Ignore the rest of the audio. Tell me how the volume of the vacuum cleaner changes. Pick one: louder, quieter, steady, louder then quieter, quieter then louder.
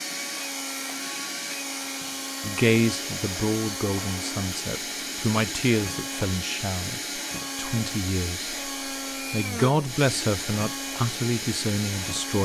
steady.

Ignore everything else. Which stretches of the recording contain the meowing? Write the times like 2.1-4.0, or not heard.
not heard.